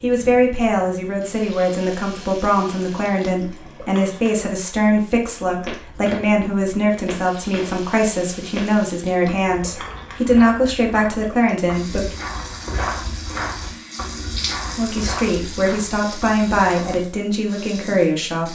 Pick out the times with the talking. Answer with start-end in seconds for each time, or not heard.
0.0-12.2, 14.8-18.5.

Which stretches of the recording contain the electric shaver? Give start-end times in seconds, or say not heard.
not heard.